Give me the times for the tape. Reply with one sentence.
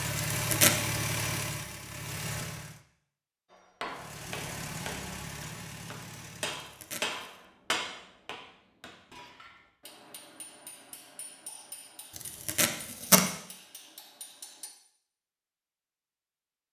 The tape can be heard from 0.3 to 0.8 s, from 6.6 to 7.3 s and from 12.2 to 13.3 s.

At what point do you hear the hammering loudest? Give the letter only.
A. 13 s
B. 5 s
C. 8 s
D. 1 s
C.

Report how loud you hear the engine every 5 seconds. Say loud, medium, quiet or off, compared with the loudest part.
loud, medium, off, off.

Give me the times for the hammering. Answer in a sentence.
You can hear the hammering from 3.5 to 14.7 s.